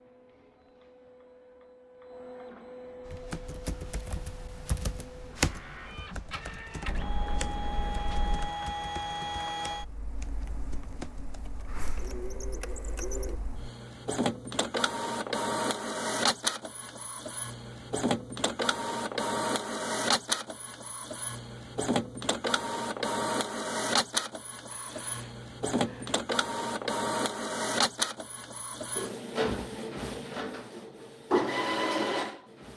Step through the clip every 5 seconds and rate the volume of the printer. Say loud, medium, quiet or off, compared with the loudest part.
quiet, medium, medium, loud, loud, loud, loud.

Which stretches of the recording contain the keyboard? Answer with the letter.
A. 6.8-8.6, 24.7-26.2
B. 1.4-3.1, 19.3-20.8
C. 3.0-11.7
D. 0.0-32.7
C.